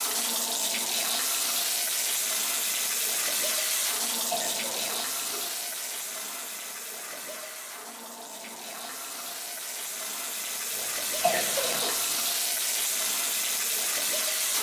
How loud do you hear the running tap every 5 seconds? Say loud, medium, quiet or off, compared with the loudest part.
loud, medium, loud.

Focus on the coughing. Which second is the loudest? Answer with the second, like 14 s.
11 s.